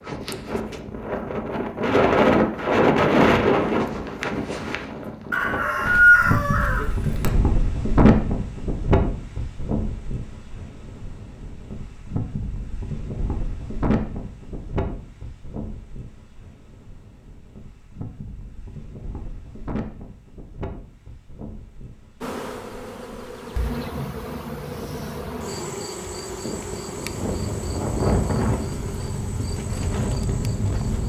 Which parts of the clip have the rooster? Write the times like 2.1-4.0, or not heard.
5.3-7.3.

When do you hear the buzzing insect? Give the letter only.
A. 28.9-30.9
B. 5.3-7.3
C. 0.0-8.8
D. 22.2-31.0
D.